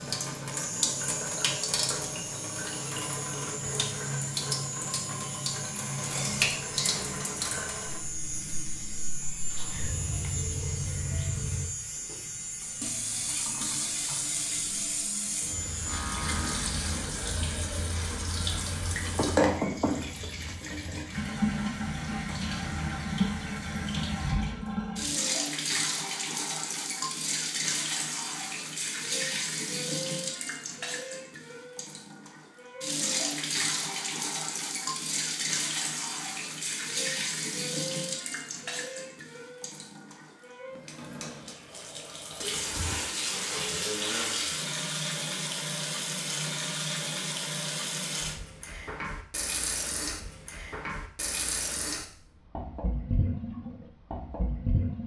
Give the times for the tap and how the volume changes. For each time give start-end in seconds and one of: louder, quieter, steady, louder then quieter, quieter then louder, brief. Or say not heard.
0.0-55.0 steady.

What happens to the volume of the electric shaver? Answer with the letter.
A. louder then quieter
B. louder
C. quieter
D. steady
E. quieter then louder
D.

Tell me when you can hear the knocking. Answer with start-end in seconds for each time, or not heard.
19.1-20.6.